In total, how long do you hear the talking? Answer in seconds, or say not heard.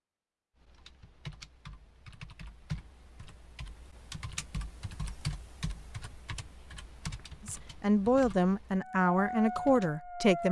3 s.